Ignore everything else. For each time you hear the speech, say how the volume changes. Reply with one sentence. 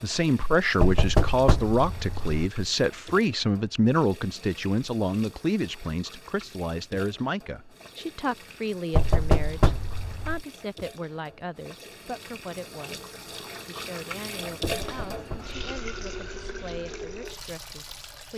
You can hear the speech from 0.0 to 18.3 s, getting quieter.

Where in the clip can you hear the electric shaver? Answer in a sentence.
The electric shaver can't be heard in this clip.